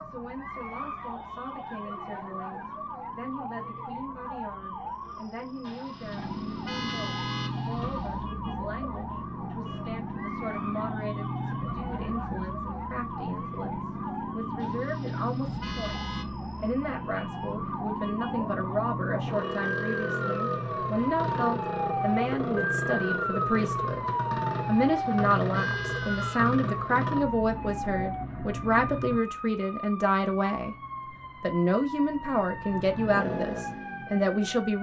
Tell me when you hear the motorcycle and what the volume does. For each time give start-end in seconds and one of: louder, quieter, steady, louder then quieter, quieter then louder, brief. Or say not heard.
0.0-29.2 louder
30.6-34.7 louder then quieter.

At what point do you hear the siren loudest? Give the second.
23 s.